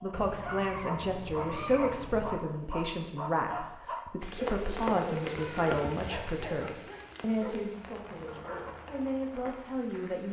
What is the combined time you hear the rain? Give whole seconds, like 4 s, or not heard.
6 s.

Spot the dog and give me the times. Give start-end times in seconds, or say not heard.
0.0-9.1.